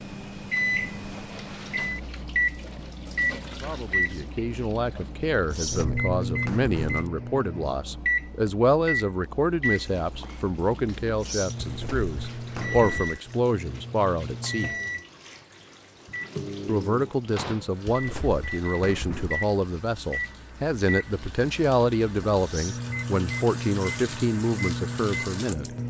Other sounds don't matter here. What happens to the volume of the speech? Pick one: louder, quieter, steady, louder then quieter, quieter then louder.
steady.